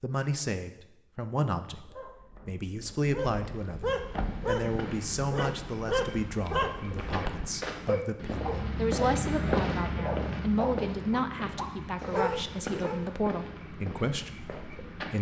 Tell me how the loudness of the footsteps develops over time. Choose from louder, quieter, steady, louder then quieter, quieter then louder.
louder then quieter.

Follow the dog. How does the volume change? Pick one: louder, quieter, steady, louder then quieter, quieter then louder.
louder.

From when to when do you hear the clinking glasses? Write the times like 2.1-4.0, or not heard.
not heard.